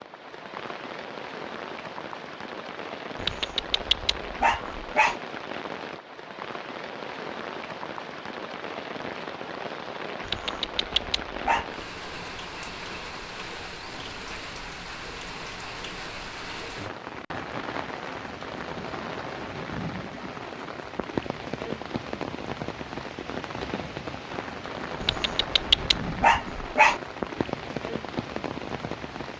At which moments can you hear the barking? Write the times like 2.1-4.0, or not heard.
3.2-5.2, 10.2-11.7, 25.0-27.0.